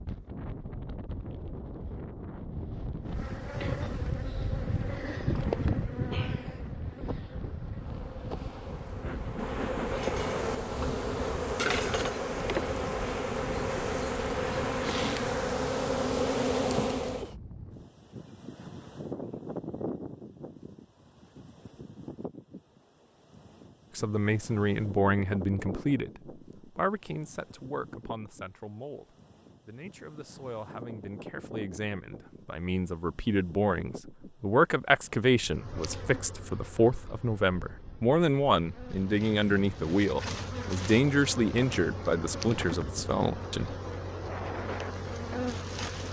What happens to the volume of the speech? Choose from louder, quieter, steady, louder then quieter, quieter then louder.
quieter then louder.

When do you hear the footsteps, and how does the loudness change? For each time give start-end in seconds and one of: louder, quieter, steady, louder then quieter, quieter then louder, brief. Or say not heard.
not heard.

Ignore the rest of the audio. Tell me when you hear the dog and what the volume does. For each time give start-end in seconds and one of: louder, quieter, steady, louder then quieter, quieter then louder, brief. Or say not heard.
not heard.